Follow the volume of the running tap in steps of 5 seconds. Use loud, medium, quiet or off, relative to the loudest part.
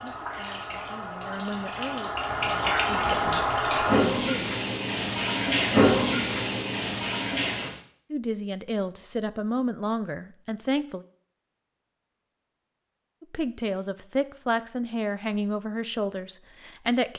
loud, loud, off, off.